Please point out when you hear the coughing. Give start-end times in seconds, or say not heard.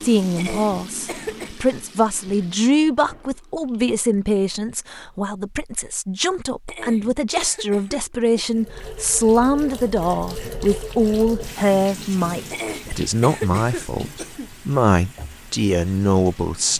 0.3-1.6, 6.7-8.6, 12.5-14.5.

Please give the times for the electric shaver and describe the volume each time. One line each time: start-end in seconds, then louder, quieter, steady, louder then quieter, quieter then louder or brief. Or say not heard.
not heard.